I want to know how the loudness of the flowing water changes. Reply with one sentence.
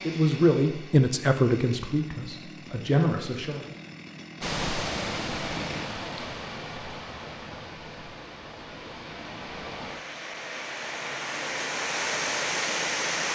The volume of the flowing water goes down, then up.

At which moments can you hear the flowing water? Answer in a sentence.
You can hear the flowing water from 4.4 to 13.2 s.